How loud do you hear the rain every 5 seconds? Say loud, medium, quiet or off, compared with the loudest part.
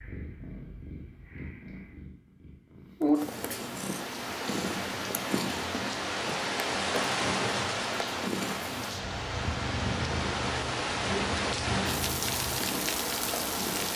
medium, loud, loud.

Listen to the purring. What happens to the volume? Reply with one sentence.
The volume of the purring goes up, then down.